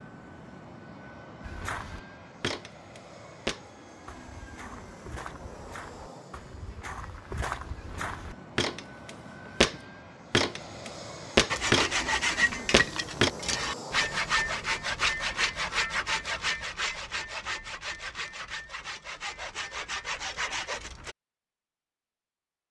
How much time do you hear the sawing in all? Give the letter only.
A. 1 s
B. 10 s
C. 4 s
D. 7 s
B.